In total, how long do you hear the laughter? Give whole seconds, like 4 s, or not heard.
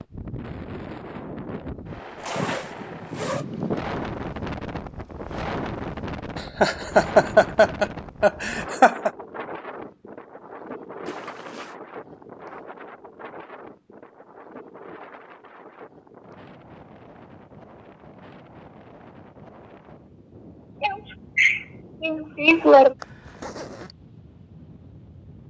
5 s.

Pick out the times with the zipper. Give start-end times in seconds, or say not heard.
2.2-3.5, 11.1-11.8, 23.0-23.9.